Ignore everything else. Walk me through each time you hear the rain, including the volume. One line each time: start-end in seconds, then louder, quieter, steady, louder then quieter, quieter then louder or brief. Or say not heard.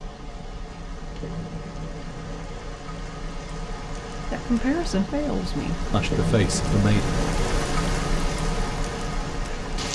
0.0-9.9 louder.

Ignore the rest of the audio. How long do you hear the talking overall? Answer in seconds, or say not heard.
3 s.